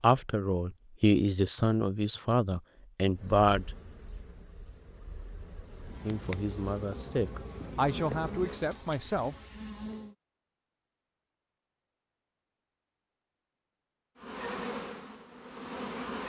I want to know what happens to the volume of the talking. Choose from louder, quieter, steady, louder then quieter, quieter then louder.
quieter.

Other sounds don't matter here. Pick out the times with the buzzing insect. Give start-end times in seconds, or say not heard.
3.1-10.2, 14.2-16.2.